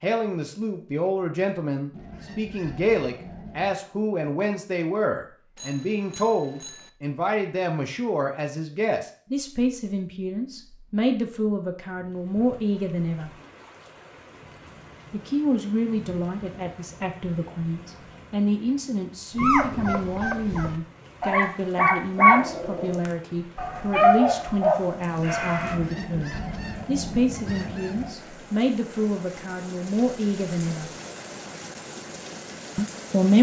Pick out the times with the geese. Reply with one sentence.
The geese can be heard from 1.9 to 3.8 s and from 25.6 to 28.1 s.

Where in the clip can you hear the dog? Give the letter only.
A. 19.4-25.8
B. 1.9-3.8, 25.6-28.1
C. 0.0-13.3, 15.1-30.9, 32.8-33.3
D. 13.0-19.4
A.